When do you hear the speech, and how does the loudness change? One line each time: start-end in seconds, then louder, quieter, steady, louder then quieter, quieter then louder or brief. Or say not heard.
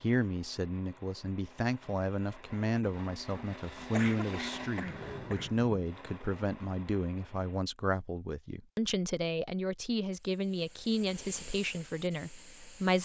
0.0-12.9 steady.